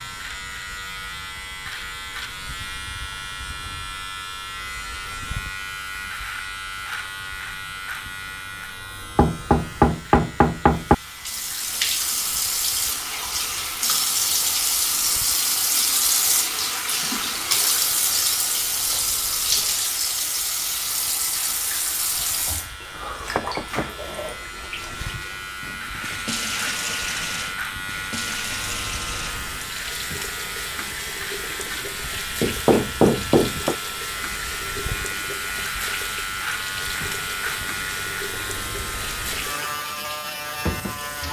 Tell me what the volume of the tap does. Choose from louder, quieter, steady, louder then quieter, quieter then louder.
quieter.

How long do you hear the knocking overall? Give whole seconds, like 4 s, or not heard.
4 s.